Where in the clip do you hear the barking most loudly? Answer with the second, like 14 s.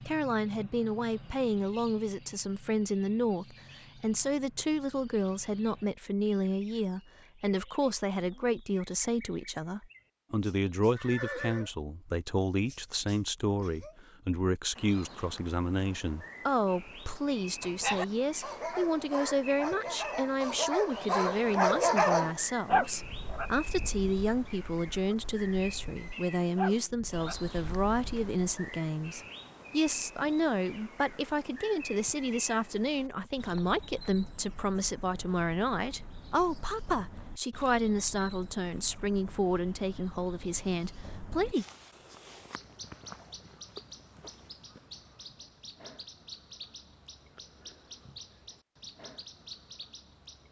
22 s.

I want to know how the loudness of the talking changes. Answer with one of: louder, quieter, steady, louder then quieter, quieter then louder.
steady.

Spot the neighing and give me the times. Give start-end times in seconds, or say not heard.
10.9-11.7.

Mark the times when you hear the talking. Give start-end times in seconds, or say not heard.
0.1-41.6.